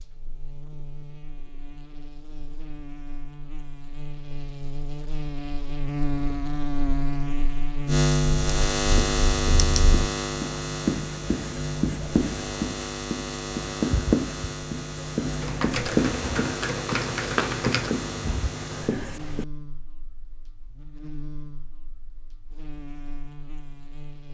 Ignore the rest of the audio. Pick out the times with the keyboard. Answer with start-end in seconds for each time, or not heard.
8.4-10.1, 15.4-18.0.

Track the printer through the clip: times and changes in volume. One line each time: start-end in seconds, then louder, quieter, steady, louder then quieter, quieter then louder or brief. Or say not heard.
not heard.